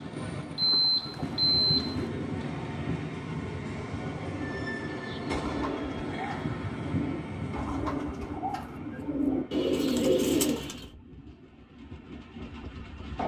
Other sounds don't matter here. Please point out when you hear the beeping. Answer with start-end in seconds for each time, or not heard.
0.6-2.1.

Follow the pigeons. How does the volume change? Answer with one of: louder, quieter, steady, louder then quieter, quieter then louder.
louder.